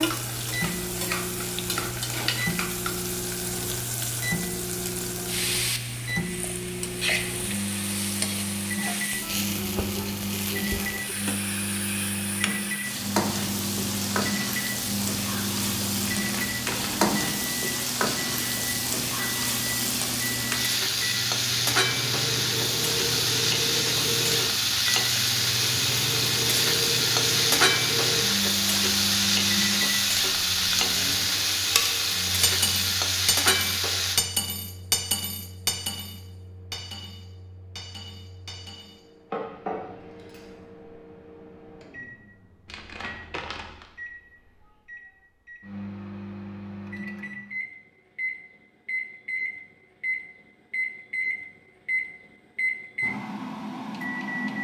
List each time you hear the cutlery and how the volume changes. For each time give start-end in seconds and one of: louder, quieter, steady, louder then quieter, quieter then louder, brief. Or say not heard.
31.7-40.5 quieter then louder.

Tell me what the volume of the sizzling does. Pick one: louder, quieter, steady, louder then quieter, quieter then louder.
louder.